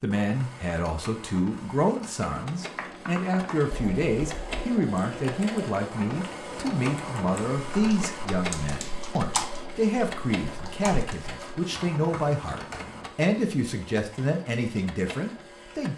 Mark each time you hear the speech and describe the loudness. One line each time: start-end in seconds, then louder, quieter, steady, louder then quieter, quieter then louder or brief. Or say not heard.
0.0-15.9 steady.